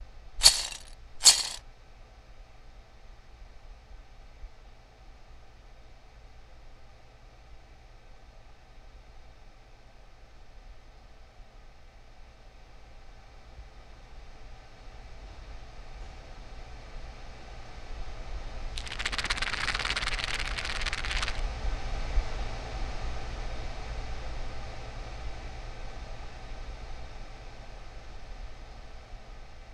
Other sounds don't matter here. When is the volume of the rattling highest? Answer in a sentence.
The volume of the rattling peaks at 1 second.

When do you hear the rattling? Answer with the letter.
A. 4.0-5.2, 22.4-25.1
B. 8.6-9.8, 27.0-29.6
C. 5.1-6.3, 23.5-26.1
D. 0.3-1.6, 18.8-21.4
D.